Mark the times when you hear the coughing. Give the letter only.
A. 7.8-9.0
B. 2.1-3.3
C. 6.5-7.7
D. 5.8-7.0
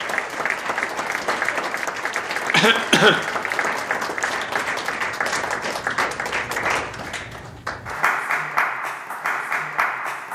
B.